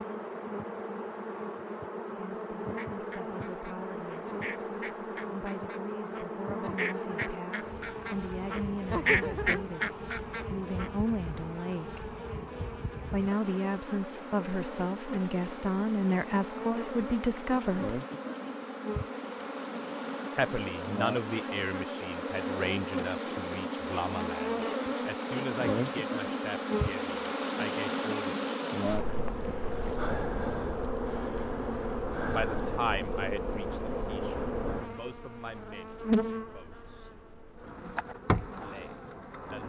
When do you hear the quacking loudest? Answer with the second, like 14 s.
9 s.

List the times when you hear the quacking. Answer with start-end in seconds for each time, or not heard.
2.6-10.9.